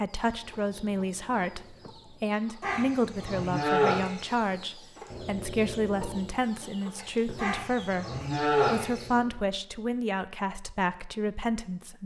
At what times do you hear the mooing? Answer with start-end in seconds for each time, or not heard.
2.6-4.3, 7.3-9.1.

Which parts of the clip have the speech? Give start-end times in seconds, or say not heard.
0.0-12.0.